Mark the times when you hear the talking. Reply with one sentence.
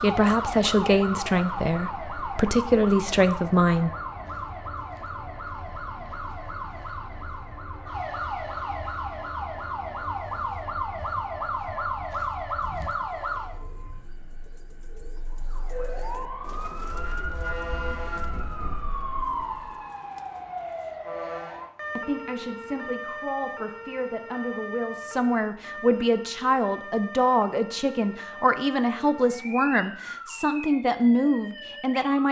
The talking can be heard from 0.0 to 3.9 s and from 21.9 to 32.2 s.